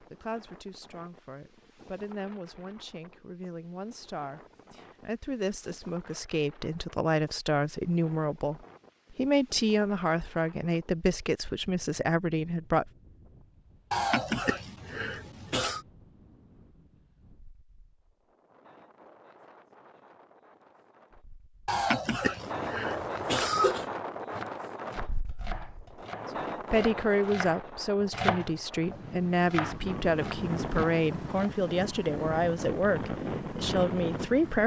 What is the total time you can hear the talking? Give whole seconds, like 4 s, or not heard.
21 s.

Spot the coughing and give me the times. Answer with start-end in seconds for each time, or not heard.
13.9-15.8, 21.6-23.9.